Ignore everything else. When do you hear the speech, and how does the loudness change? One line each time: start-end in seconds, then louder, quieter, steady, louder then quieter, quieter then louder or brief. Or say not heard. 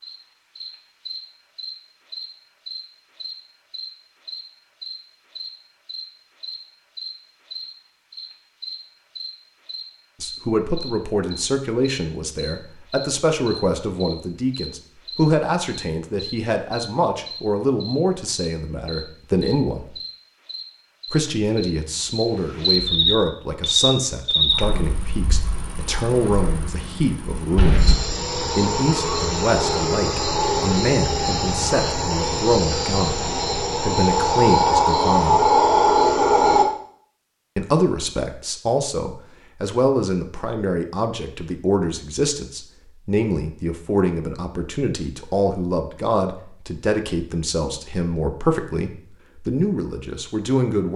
10.2-19.9 steady
21.1-35.4 steady
37.5-50.9 steady.